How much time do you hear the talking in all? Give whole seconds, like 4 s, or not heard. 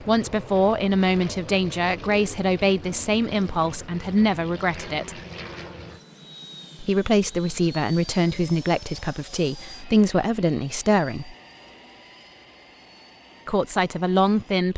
11 s.